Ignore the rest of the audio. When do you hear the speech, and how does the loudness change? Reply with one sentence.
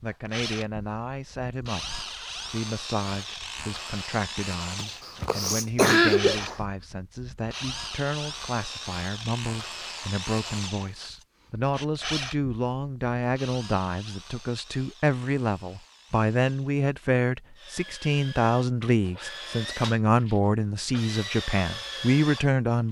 You can hear the speech from 0.0 to 22.8 s, getting louder.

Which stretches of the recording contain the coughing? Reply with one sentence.
You can hear the coughing from 4.8 to 6.6 s.